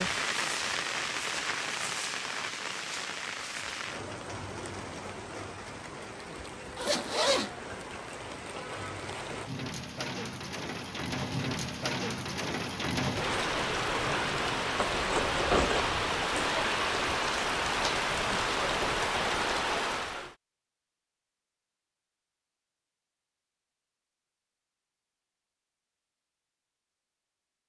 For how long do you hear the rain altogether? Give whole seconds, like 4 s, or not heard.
20 s.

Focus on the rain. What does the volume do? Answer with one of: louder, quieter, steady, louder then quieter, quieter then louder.
quieter then louder.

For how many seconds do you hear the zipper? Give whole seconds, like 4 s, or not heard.
2 s.